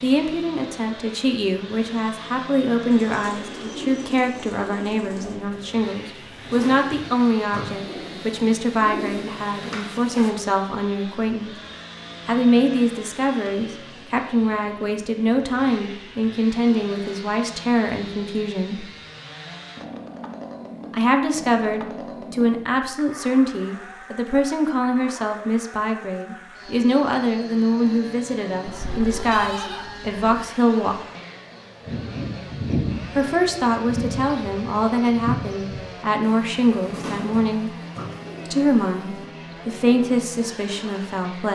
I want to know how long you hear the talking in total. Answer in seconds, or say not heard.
36 s.